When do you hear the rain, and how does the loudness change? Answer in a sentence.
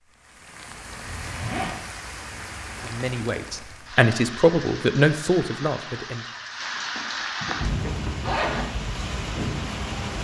You can hear the rain from 0.0 to 10.1 s, getting louder.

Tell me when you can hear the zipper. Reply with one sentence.
The zipper can be heard from 1.1 to 1.8 s and from 6.6 to 8.7 s.